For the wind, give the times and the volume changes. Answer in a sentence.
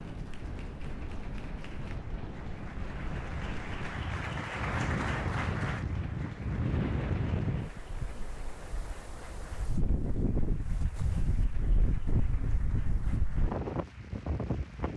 The wind can be heard from 0.0 to 14.9 s, getting louder.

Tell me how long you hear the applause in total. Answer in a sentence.
The applause can be heard for 15 seconds in total.